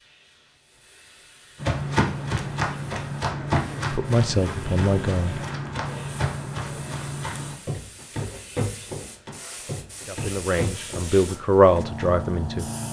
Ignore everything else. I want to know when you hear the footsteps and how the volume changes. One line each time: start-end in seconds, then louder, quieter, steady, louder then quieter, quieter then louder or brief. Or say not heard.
1.6-12.2 quieter.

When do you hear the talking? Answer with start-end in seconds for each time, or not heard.
3.9-5.4, 10.1-12.7.